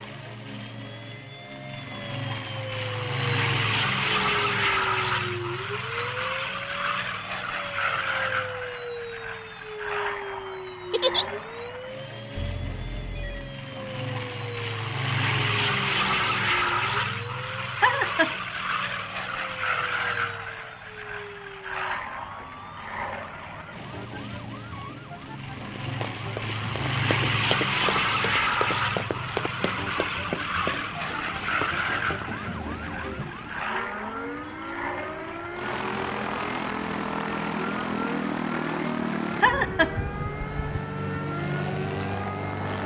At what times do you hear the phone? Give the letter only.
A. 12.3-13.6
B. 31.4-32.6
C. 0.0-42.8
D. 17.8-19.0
A.